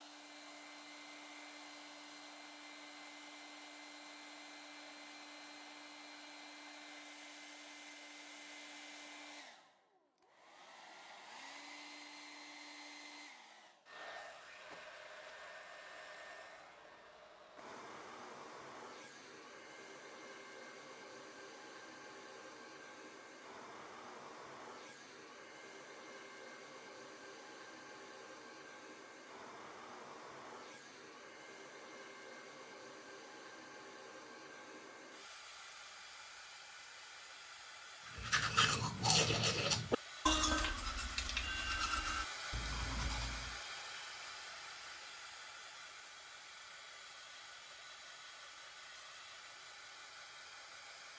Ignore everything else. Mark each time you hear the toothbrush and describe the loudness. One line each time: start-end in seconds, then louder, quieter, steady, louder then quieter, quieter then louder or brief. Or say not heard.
38.1-43.6 quieter.